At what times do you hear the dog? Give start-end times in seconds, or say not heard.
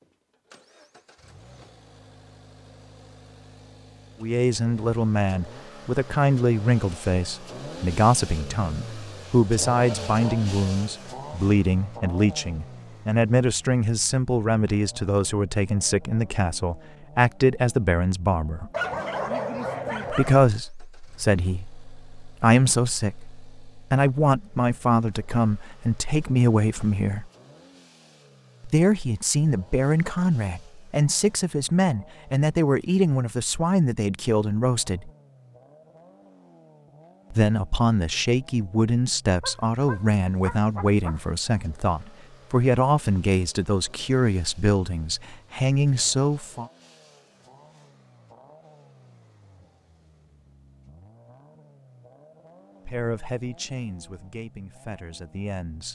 18.7-20.4, 39.4-41.2.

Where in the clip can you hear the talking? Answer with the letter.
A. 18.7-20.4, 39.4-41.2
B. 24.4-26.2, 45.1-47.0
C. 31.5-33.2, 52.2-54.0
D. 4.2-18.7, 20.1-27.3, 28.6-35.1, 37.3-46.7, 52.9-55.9
D.